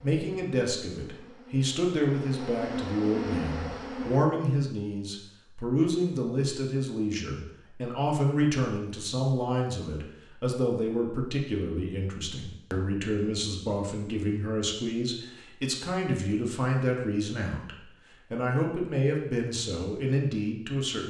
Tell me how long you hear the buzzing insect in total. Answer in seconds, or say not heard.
4 s.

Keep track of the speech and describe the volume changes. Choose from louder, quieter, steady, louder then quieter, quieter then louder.
steady.